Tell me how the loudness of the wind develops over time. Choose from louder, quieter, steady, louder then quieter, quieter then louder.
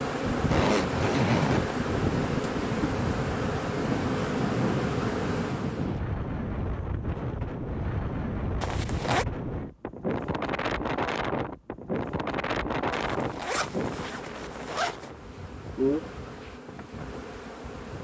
quieter.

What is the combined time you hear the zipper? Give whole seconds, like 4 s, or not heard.
4 s.